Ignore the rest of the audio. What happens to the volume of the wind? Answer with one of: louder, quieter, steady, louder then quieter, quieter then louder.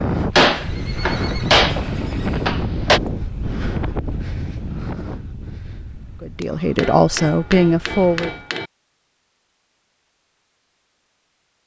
quieter.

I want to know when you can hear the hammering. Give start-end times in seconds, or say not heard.
0.3-3.0, 6.8-8.7.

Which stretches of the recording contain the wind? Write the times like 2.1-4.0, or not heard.
0.0-8.3.